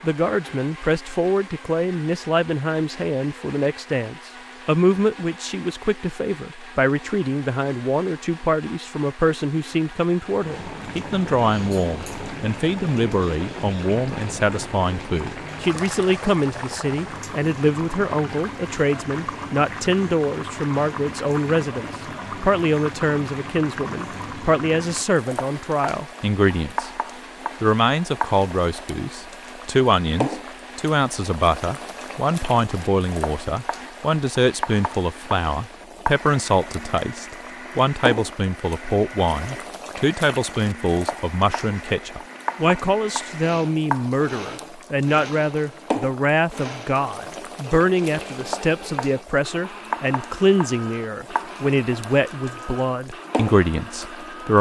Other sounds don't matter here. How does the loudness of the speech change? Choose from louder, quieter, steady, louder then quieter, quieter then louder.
steady.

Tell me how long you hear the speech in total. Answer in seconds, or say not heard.
54 s.